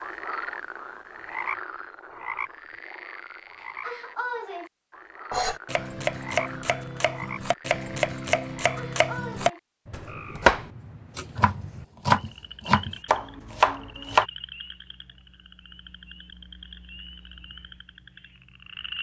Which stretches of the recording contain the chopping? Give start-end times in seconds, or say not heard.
5.3-14.2.